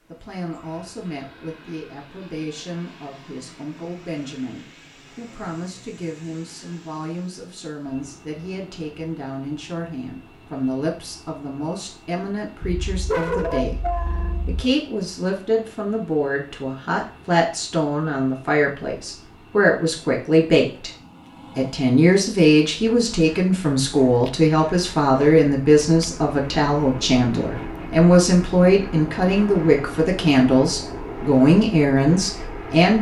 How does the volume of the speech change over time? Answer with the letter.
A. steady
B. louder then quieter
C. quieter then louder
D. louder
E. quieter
D.